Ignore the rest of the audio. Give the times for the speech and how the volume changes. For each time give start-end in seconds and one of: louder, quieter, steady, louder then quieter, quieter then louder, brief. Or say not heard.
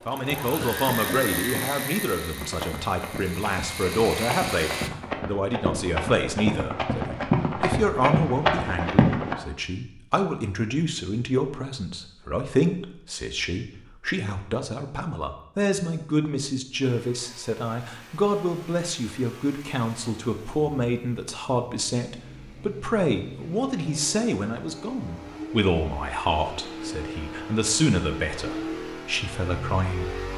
0.1-30.3 steady.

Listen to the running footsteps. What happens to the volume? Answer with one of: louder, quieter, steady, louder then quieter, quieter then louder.
louder.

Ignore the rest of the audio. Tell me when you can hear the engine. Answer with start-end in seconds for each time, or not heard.
0.0-4.9, 16.8-30.3.